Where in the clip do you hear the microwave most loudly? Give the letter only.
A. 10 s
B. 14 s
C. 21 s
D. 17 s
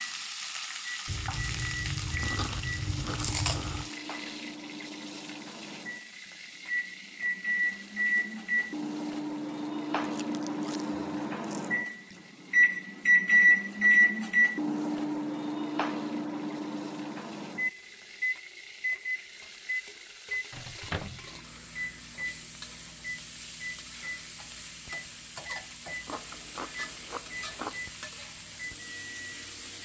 B.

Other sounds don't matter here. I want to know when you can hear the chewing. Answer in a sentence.
The chewing can be heard from 1.1 to 3.9 s, from 10.0 to 11.8 s and from 26.1 to 27.9 s.